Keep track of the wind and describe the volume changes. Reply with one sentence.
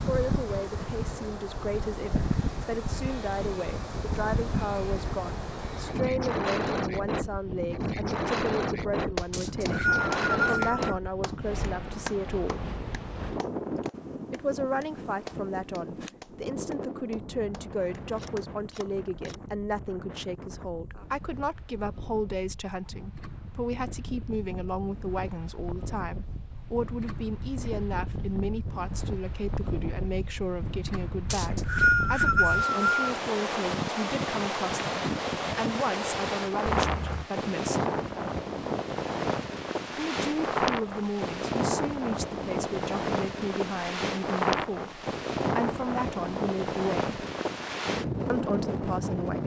The volume of the wind goes down, then up.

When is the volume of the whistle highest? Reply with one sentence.
The loudest moment of the whistle is at 32 seconds.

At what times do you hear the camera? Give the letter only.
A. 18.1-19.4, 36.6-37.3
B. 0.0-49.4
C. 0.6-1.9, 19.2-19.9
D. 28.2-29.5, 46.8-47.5
A.